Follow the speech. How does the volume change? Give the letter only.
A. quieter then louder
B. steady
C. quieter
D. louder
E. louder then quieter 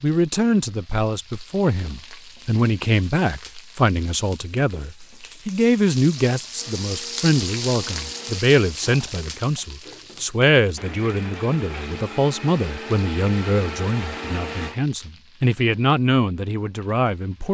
B.